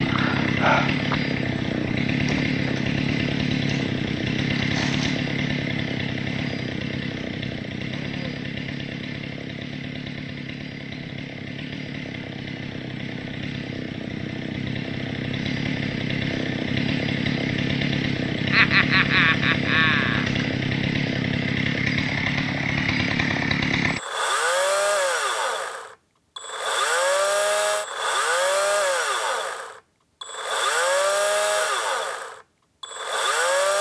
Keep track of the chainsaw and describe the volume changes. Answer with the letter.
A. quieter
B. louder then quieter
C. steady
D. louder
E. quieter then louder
E.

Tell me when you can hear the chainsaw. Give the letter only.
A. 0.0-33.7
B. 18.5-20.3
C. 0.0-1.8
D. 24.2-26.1
A.